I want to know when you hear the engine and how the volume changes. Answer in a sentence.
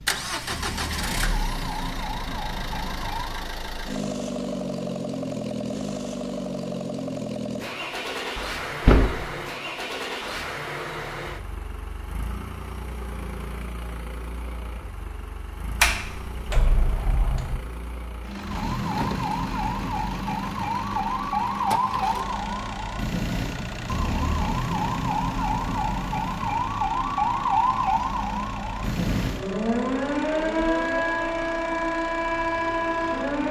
You can hear the engine from 0.0 to 33.4 s, getting quieter.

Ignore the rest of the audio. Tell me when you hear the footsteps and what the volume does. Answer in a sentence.
The footsteps can't be heard in this clip.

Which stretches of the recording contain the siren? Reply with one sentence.
You can hear the siren from 0.0 to 3.5 s and from 18.4 to 33.4 s.